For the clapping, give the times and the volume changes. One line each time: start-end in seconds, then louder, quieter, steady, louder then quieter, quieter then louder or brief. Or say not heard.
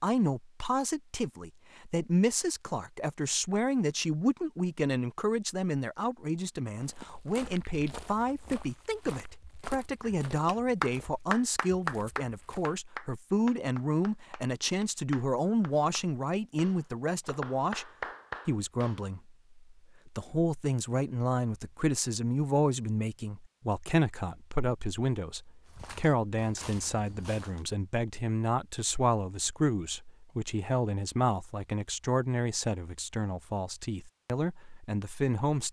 10.0-19.1 quieter then louder.